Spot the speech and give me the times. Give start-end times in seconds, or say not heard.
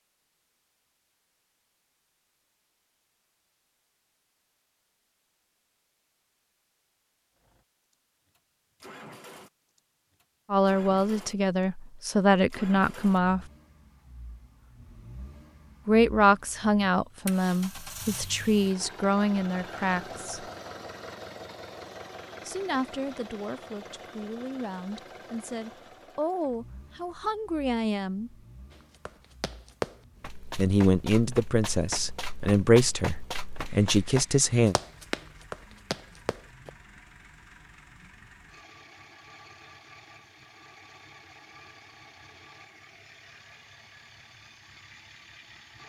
10.5-13.4, 15.8-20.5, 22.4-28.3, 30.6-34.8.